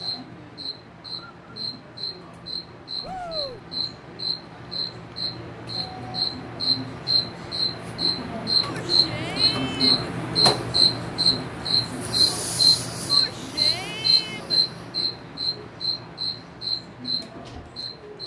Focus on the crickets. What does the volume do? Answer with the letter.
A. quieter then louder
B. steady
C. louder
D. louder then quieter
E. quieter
D.